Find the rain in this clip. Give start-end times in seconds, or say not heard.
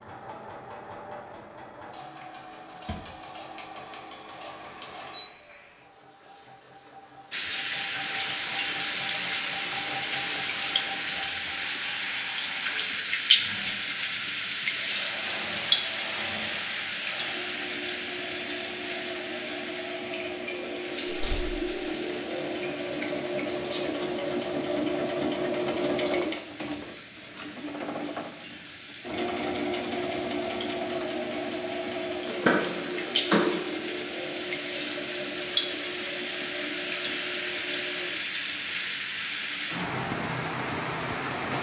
7.3-41.5.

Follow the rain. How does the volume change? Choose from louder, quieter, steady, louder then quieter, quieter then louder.
quieter then louder.